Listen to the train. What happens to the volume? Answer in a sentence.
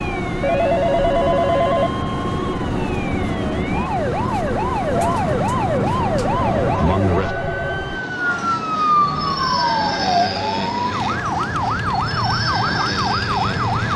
The volume of the train stays about the same.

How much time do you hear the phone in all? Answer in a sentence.
You can hear the phone for 4 seconds altogether.